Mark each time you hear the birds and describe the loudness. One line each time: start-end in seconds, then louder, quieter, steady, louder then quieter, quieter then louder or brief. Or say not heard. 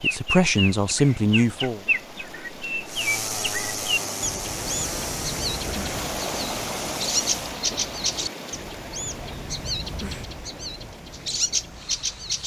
0.0-12.4 steady.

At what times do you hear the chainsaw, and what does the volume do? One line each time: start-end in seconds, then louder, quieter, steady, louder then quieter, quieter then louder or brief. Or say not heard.
2.9-7.5 quieter.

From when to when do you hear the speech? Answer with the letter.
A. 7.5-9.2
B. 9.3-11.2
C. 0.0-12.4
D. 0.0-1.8
D.